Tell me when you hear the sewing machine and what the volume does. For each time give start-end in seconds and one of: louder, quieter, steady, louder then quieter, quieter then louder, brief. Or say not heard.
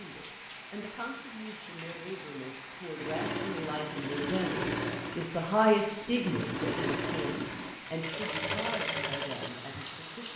3.0-10.3 steady.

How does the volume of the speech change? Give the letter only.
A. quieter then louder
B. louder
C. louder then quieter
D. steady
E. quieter
C.